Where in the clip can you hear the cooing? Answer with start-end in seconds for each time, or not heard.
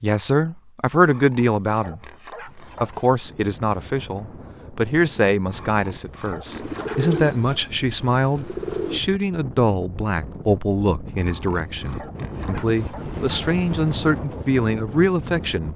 6.5-9.0.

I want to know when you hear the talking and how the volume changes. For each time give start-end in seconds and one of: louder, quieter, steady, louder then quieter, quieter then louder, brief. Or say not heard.
0.0-15.7 steady.